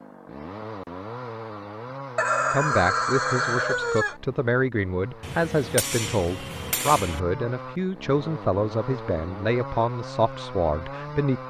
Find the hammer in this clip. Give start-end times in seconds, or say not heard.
5.2-7.2.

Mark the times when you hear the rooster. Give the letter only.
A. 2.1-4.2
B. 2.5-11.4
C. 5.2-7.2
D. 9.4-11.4
A.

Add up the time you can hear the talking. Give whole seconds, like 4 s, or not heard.
9 s.